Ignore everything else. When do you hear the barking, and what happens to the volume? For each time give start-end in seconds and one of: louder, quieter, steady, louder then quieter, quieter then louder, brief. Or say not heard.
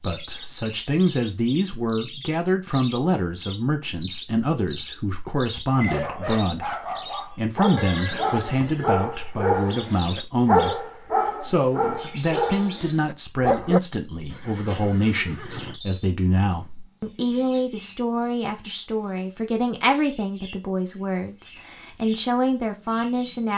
5.8-13.8 louder then quieter.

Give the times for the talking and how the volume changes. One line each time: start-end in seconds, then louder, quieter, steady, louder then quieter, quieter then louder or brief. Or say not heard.
0.0-23.5 steady.